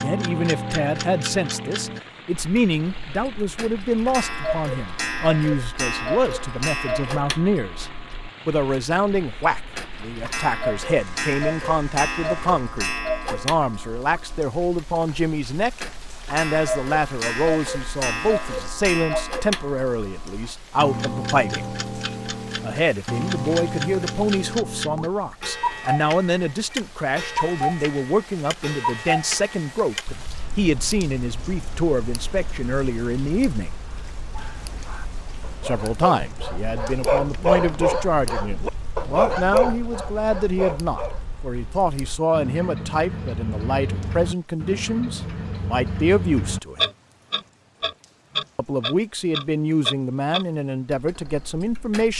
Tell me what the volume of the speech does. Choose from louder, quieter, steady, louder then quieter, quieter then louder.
steady.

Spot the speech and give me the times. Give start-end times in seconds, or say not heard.
0.0-21.7, 22.6-33.7, 35.6-46.8, 48.5-52.1.